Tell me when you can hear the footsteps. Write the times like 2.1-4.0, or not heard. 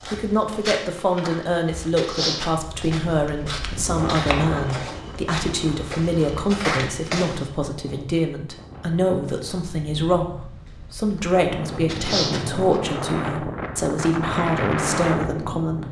0.0-7.5, 10.7-12.8.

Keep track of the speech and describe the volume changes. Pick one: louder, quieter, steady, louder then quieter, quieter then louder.
steady.